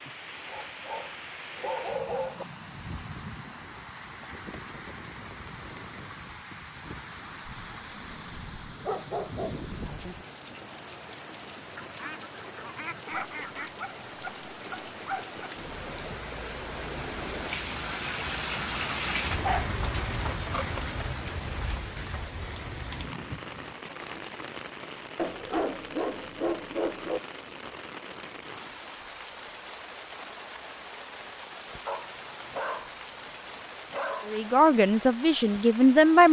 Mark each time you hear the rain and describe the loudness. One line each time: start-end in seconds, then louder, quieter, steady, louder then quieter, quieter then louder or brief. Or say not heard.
0.0-36.2 louder then quieter.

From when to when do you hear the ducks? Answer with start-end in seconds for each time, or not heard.
11.8-13.8.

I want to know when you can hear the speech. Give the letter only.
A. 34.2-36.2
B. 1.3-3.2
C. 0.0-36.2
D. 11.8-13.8
A.